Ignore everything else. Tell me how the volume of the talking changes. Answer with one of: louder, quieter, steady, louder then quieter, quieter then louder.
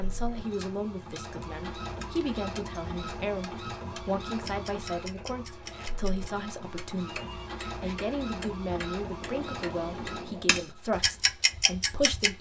steady.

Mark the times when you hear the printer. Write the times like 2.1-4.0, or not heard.
0.0-12.3.